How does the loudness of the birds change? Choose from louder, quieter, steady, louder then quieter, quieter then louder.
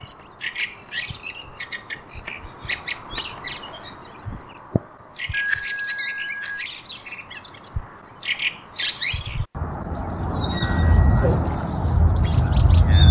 louder.